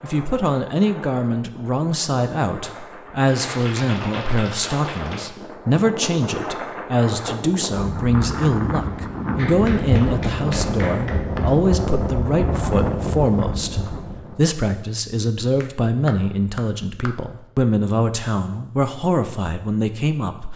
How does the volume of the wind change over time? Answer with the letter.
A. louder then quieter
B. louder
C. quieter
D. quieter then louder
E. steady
B.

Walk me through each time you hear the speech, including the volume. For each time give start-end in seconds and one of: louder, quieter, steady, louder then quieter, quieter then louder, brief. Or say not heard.
0.0-20.5 steady.